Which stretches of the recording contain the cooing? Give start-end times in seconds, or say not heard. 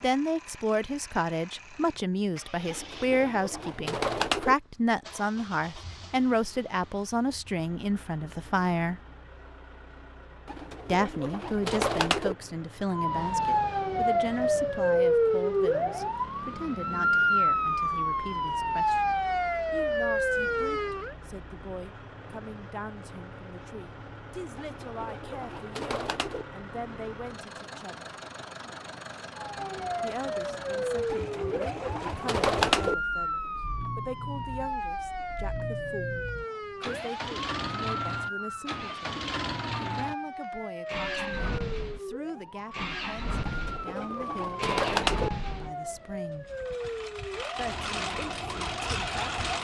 2.6-4.5, 10.4-12.3, 24.6-26.4, 31.1-33.0, 43.4-45.3.